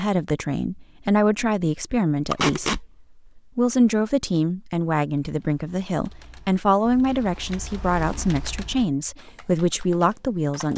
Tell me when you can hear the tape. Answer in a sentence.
You can hear the tape from 2.3 to 2.8 s and from 7.1 to 8.4 s.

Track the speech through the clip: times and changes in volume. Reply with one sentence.
You can hear the speech from 0.0 to 10.7 s, at a steady volume.